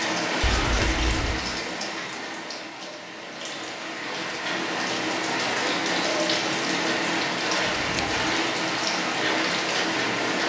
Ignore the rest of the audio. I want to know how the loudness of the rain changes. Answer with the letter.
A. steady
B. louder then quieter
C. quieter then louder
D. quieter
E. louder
C.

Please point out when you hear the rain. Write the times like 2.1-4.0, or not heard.
0.0-10.4.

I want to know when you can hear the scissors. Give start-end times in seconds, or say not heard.
0.4-1.4, 7.7-8.3.